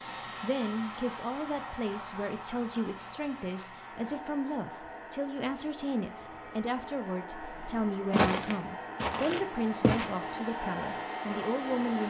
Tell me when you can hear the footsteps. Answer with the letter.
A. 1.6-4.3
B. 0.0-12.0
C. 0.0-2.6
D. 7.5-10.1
D.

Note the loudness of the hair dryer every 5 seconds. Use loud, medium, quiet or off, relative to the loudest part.
medium, medium, loud.